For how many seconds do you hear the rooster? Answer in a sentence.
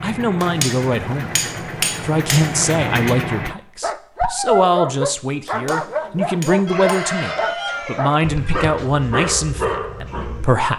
The rooster can be heard for 2 seconds in total.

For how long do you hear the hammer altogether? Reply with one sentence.
The hammer can be heard for 4 seconds in total.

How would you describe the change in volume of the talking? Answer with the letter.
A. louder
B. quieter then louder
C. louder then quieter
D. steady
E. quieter
D.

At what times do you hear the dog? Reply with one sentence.
The dog can be heard from 3.8 to 10.6 s.